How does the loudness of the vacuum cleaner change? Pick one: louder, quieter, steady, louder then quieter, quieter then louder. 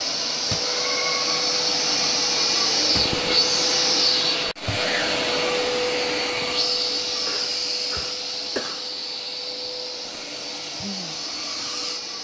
quieter.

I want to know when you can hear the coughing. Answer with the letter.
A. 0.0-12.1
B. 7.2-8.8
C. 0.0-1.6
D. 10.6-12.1
B.